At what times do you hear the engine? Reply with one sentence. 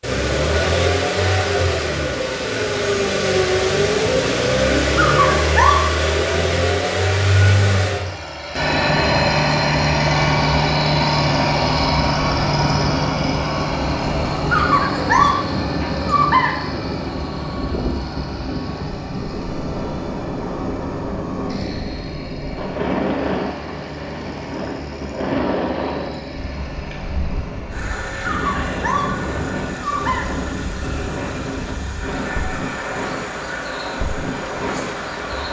You can hear the engine from 0.0 to 35.4 s.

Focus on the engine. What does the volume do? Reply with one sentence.
The loudness of the engine goes down.